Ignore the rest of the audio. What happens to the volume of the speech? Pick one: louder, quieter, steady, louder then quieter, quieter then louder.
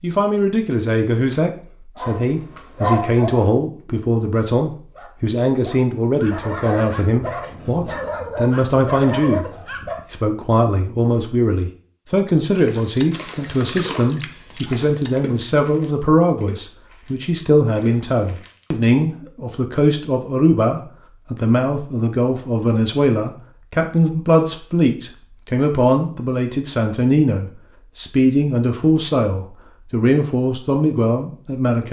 steady.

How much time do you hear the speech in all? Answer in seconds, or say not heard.
31 s.